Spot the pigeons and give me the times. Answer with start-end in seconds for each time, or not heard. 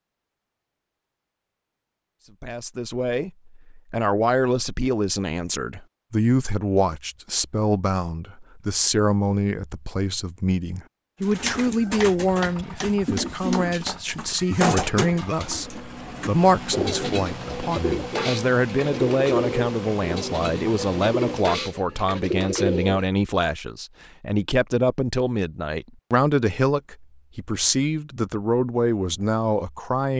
11.2-23.1.